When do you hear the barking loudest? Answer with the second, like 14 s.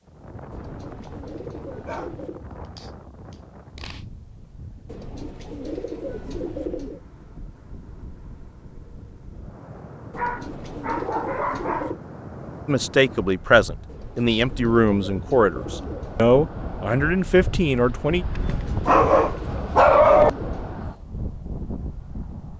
20 s.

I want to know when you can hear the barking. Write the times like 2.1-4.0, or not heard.
1.9-4.0, 10.2-11.9, 18.4-20.3.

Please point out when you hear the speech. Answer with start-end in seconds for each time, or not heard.
12.7-18.2.